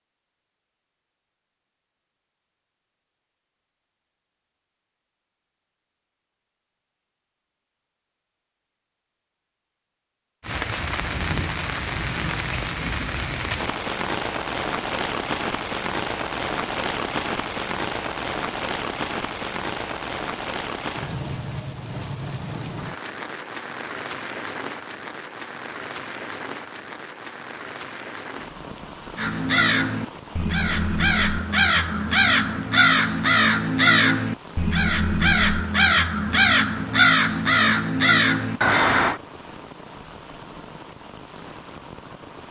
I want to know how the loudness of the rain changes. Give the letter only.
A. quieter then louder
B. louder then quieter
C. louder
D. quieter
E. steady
D.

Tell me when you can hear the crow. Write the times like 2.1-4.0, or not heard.
29.1-39.2.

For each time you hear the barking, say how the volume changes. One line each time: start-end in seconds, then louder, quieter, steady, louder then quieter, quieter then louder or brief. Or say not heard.
not heard.